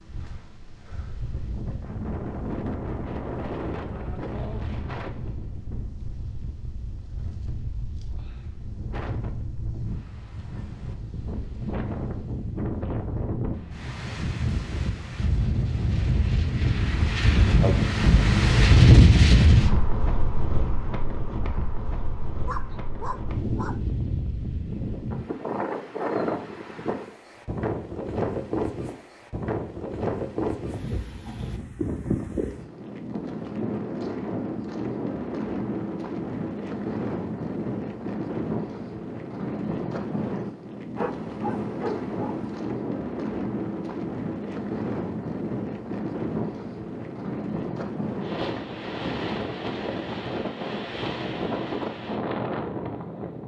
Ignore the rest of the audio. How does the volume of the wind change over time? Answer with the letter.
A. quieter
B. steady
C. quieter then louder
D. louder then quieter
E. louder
D.